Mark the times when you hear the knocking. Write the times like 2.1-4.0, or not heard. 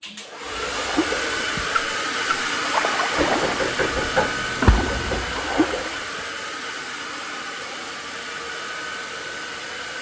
3.1-5.2.